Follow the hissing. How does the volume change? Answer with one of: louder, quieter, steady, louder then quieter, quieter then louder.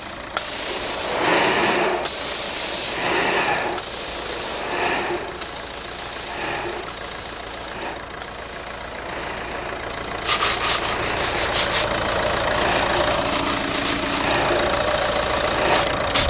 quieter then louder.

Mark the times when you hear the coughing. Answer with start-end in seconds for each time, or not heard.
not heard.